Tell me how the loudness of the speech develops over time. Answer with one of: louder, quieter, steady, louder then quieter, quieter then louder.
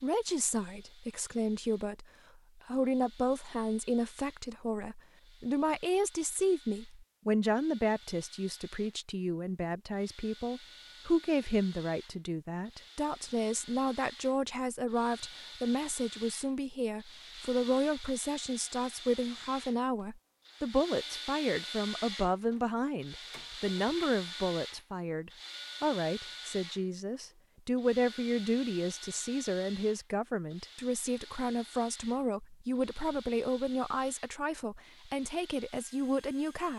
steady.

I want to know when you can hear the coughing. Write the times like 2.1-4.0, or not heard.
not heard.